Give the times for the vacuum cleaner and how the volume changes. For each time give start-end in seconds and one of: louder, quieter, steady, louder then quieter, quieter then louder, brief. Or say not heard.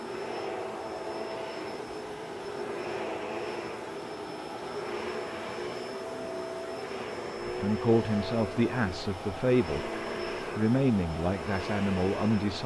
0.0-12.6 steady.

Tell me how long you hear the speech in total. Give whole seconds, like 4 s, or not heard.
5 s.